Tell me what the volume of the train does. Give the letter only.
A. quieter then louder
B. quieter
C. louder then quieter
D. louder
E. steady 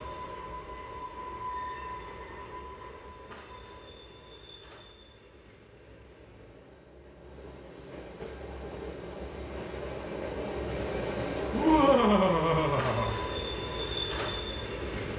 A.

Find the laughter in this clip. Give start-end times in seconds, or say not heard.
11.5-13.1.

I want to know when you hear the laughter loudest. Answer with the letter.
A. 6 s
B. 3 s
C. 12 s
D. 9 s
C.